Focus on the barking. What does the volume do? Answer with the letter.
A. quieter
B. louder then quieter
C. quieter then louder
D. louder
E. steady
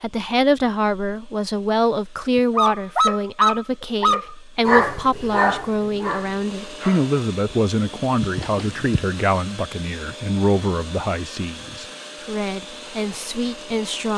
A.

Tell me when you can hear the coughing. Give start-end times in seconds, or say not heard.
8.2-9.2.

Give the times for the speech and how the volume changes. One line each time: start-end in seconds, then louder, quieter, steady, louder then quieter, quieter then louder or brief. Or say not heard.
0.0-14.1 quieter.